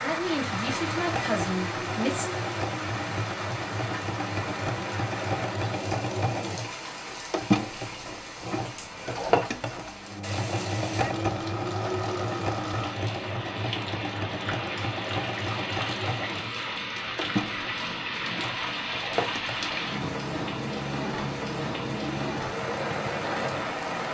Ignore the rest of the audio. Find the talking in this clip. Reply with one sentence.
The talking can be heard from 0.0 to 2.2 s.